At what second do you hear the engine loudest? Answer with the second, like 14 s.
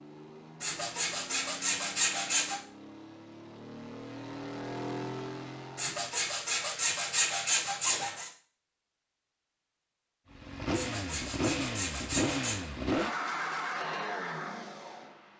13 s.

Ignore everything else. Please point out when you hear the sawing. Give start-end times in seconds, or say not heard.
0.6-2.6, 5.8-8.3, 10.7-12.6.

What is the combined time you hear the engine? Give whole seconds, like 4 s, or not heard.
11 s.